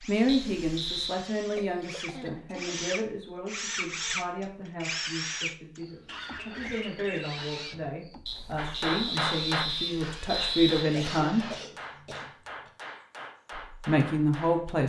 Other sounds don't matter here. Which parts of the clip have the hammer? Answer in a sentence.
The hammer can be heard from 8.6 to 14.8 s.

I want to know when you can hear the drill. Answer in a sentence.
You can hear the drill from 0.0 to 11.7 s.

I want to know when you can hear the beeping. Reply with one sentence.
The beeping can be heard from 0.2 to 1.1 s and from 8.2 to 10.8 s.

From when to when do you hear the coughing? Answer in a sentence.
The coughing can be heard from 1.6 to 2.8 s, from 6.0 to 7.8 s and from 10.8 to 12.7 s.